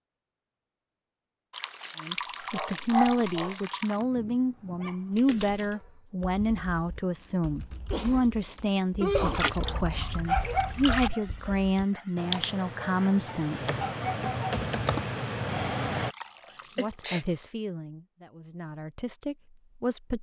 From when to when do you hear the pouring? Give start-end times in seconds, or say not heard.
1.5-4.0, 9.2-11.2, 16.1-17.2.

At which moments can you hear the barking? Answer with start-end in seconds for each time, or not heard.
2.4-6.0, 9.6-14.5.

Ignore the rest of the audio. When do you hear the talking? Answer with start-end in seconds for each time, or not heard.
2.0-13.7, 16.8-20.1.